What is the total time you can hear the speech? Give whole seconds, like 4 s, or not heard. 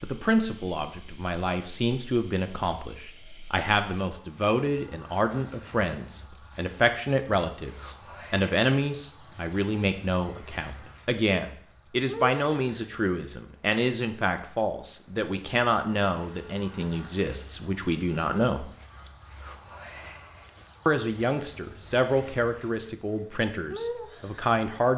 23 s.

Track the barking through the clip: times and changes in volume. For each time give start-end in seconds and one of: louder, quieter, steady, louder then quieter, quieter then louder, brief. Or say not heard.
not heard.